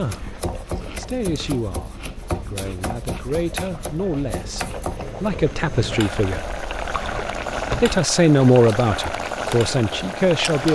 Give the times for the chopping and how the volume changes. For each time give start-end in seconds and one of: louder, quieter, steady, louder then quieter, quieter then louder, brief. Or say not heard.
0.0-5.2 steady.